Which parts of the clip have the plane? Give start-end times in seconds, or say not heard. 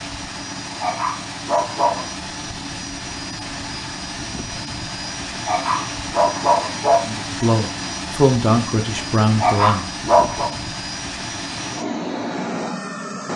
0.0-13.3.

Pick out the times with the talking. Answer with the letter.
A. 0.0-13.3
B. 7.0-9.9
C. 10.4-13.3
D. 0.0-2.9
B.